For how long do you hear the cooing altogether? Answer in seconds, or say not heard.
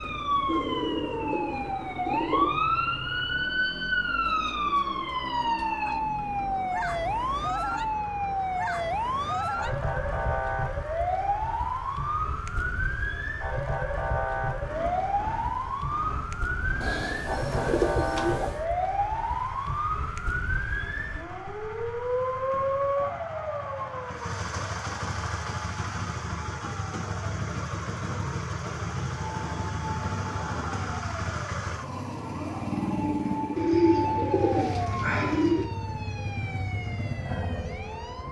6 s.